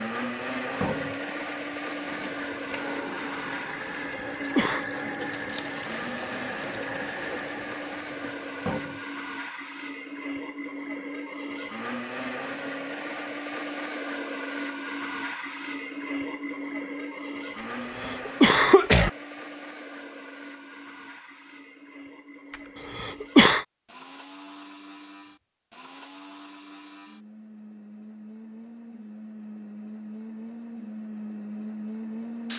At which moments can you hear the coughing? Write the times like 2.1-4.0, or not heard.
4.2-4.8, 18.0-19.1, 22.9-23.6.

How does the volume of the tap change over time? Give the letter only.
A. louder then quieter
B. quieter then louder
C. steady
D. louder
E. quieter
D.